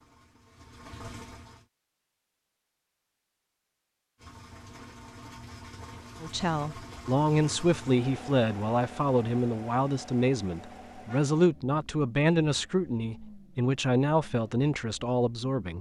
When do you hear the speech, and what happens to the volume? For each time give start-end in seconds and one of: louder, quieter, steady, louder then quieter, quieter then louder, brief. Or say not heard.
6.2-15.7 steady.